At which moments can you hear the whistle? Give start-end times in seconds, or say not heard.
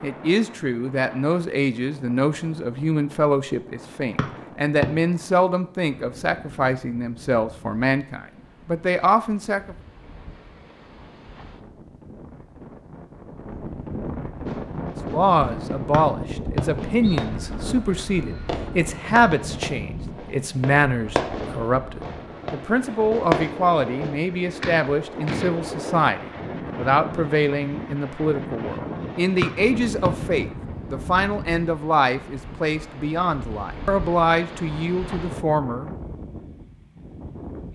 4.2-4.8, 15.9-17.2, 29.4-30.1.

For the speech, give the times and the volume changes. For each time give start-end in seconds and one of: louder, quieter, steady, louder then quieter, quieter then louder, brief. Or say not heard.
0.0-9.8 steady
15.1-35.9 steady.